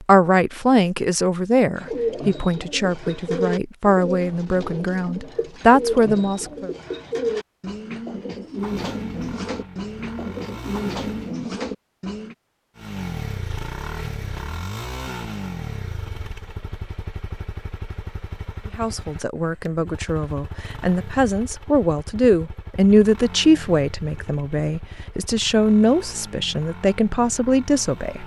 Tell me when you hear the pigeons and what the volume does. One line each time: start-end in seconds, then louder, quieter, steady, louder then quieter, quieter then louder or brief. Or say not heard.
1.8-12.3 steady.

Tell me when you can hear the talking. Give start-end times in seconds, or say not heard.
0.0-6.7, 18.8-28.2.